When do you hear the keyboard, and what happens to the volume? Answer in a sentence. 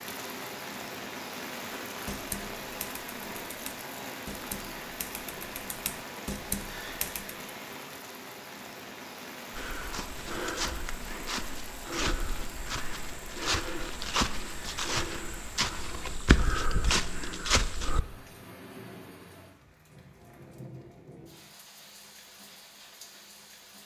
You can hear the keyboard from 2.0 to 7.3 s, getting louder.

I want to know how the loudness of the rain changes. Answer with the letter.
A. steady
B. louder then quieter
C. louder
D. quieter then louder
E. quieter
E.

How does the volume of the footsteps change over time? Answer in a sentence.
The volume of the footsteps goes up.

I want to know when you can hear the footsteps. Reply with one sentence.
You can hear the footsteps from 9.5 to 18.0 s.